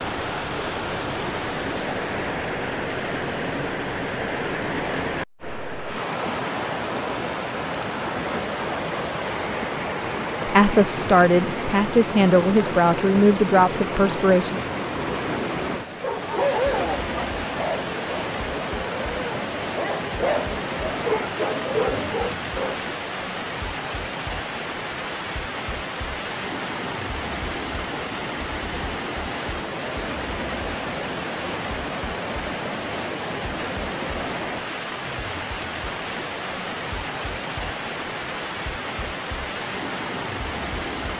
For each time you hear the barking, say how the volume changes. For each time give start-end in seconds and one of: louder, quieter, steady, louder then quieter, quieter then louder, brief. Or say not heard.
16.0-23.0 quieter then louder.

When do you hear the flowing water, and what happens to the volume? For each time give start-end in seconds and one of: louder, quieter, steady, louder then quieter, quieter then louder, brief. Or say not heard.
0.0-41.1 steady.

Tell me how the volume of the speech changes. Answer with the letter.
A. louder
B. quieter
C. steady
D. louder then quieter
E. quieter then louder
C.